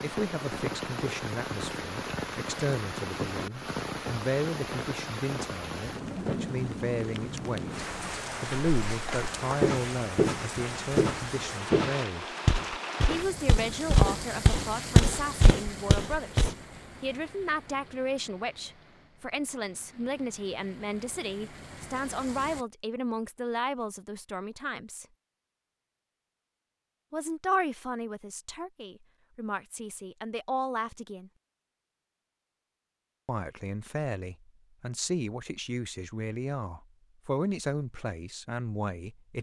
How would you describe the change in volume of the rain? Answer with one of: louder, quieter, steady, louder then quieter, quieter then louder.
quieter.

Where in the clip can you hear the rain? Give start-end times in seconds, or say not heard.
0.0-22.6.